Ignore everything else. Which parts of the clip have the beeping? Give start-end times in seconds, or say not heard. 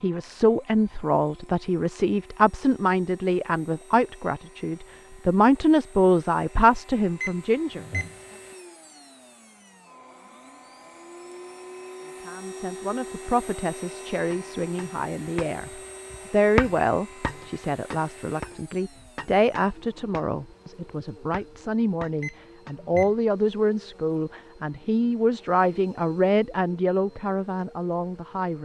7.2-8.1, 22.2-23.1.